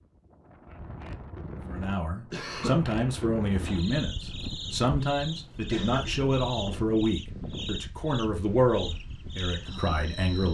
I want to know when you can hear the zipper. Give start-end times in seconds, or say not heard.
not heard.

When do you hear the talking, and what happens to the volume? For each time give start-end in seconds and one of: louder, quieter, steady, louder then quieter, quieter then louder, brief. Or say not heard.
1.6-10.4 steady.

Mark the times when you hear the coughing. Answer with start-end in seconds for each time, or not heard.
2.3-2.8, 5.2-6.3.